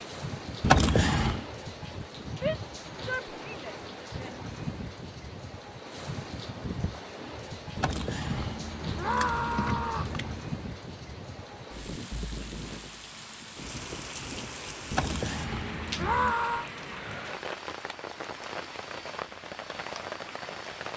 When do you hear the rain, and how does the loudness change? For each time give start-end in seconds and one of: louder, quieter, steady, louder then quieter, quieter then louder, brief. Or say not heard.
0.0-20.9 steady.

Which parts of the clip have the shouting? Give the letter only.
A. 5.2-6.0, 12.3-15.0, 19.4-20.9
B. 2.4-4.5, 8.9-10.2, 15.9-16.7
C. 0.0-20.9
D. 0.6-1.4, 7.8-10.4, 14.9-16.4
B.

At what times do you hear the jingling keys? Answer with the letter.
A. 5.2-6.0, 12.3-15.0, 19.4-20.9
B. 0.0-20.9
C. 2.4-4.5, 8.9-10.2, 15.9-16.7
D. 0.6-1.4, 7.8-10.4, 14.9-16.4
D.